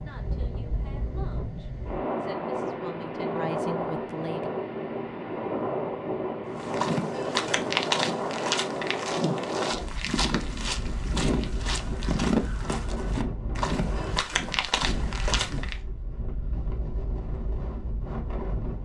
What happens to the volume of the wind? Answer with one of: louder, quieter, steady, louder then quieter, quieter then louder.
quieter.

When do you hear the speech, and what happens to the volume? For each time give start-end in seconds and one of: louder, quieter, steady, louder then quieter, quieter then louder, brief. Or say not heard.
0.0-4.5 louder.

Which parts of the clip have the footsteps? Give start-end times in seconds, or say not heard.
6.5-15.8.